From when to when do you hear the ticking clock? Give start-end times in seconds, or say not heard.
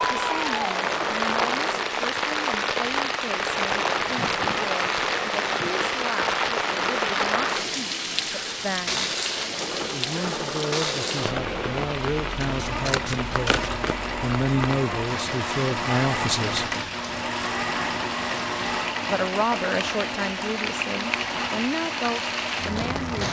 not heard.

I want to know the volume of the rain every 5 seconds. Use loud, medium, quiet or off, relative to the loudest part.
loud, loud, medium, medium, medium.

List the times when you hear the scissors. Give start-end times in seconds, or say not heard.
12.4-13.9.